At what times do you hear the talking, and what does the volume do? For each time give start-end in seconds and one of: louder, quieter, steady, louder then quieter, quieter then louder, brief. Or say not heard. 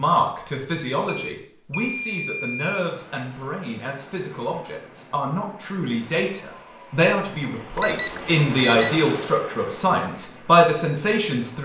0.0-11.5 louder.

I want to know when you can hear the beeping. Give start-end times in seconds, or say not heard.
1.1-2.8, 7.8-8.9.